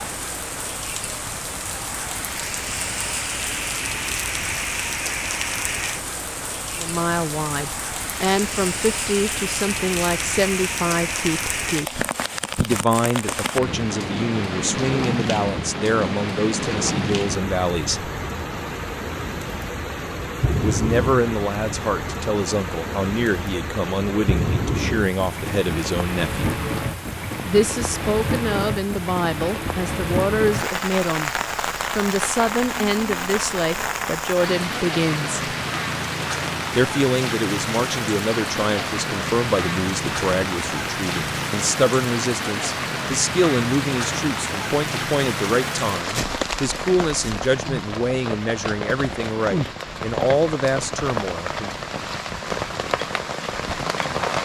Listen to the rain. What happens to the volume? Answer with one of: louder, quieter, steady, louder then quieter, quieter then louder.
steady.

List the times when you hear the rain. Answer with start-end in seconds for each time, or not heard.
0.0-54.4.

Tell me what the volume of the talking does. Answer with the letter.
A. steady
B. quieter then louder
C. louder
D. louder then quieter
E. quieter
A.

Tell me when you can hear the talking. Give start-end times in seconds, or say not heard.
6.8-18.1, 20.6-26.4, 27.4-31.3, 31.9-35.4, 36.8-51.7.